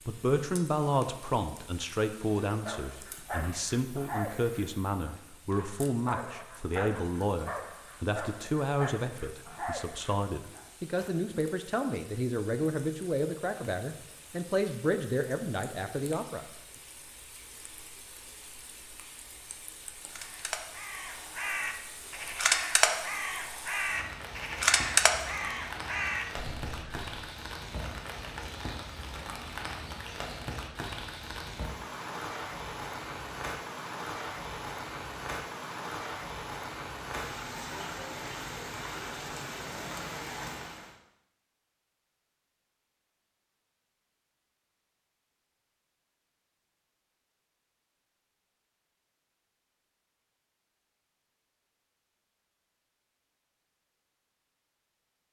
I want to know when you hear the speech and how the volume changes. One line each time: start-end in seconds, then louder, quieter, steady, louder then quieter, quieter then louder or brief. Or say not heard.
0.1-16.4 steady.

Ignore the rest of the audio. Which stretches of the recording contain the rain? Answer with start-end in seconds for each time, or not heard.
0.0-41.0.